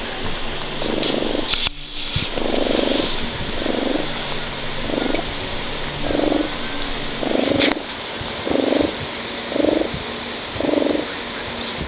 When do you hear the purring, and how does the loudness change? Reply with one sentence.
You can hear the purring from 0.0 to 11.8 s, at a steady volume.